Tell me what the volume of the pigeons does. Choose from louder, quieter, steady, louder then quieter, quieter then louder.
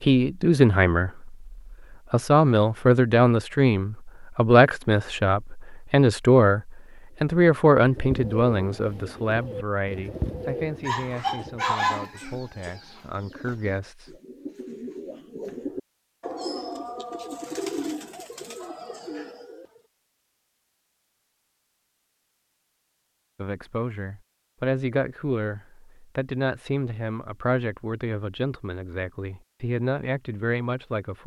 quieter then louder.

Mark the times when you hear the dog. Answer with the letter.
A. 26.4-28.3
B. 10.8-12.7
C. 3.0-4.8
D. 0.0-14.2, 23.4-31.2
B.